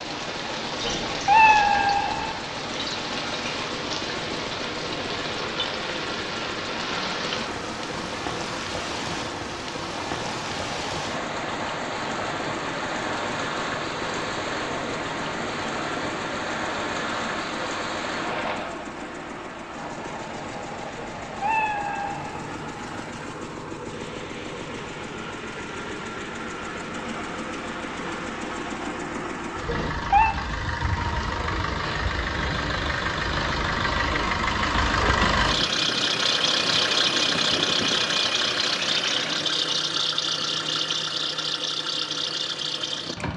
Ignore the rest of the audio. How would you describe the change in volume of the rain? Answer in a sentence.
The volume of the rain goes down.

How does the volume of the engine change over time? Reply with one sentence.
The loudness of the engine goes up.